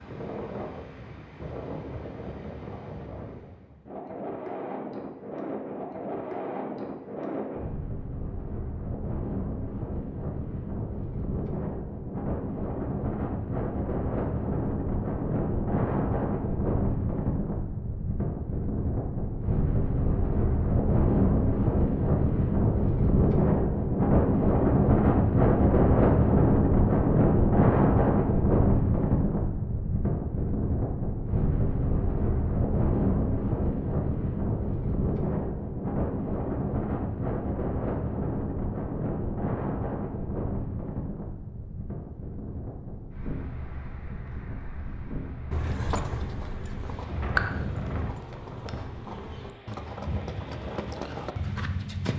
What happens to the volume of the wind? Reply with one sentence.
The volume of the wind goes up, then down.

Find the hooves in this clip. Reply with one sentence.
You can hear the hooves from 45.5 to 52.1 s.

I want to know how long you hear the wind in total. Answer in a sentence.
You can hear the wind for 52 seconds altogether.